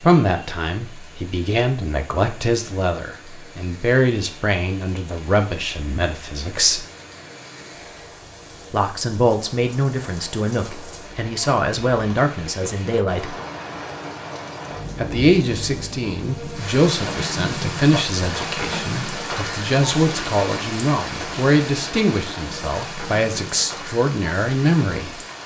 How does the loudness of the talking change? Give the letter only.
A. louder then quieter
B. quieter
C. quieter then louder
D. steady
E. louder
D.